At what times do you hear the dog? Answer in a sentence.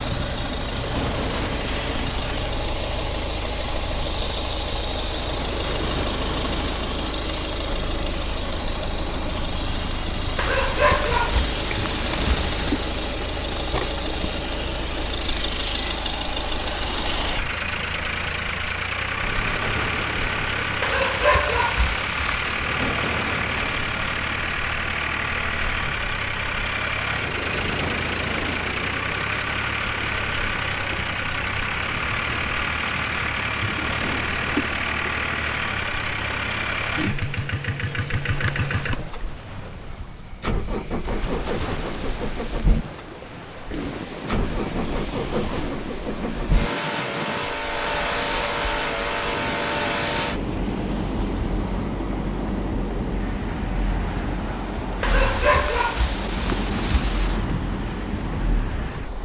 You can hear the dog from 10.3 to 12.6 s, from 20.8 to 22.5 s and from 55.0 to 57.5 s.